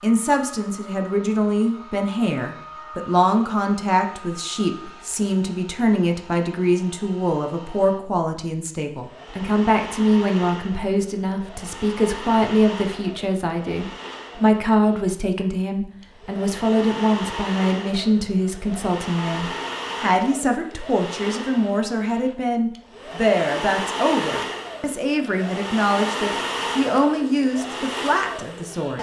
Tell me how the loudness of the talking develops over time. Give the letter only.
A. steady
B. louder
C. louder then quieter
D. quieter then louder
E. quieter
A.